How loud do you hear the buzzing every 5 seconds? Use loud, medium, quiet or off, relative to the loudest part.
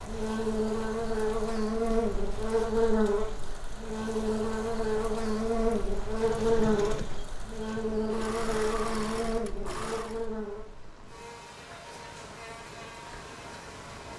loud, loud, quiet.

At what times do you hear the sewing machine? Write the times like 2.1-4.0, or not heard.
6.2-10.3.